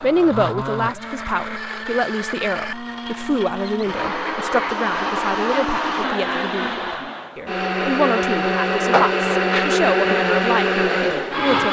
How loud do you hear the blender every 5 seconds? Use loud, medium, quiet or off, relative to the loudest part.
medium, loud, loud.